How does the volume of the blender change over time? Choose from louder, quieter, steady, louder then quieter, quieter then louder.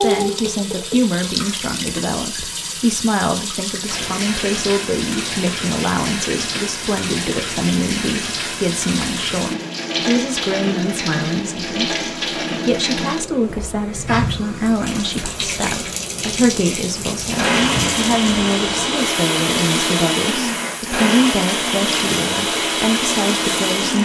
steady.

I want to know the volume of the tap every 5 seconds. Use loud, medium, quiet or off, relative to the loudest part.
loud, loud, loud, loud, medium.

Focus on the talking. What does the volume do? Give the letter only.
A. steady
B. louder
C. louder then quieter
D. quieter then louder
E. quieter
A.